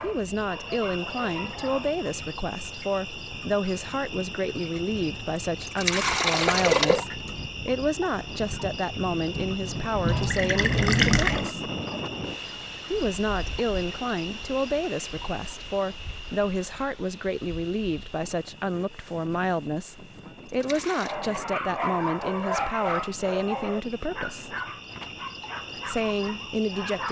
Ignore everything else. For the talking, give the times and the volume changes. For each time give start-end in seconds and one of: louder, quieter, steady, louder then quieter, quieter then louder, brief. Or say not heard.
0.0-11.7 steady
12.9-24.6 steady
25.9-27.0 brief.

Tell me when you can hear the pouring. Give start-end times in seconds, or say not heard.
5.7-7.3, 10.1-11.5, 20.4-21.1.